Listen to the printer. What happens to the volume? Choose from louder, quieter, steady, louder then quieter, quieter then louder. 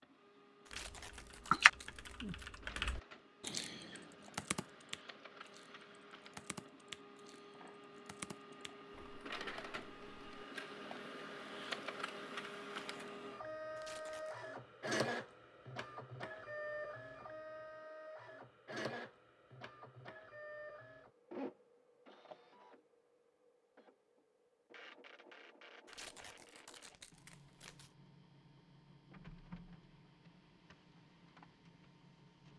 louder then quieter.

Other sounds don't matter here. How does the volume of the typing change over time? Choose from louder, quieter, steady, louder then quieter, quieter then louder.
quieter.